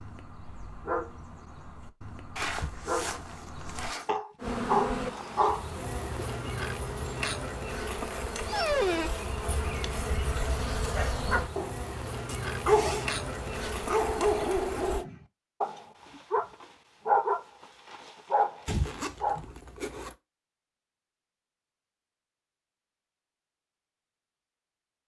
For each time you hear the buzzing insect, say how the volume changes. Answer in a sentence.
You can hear the buzzing insect from 4.4 to 15.1 s, at a steady volume.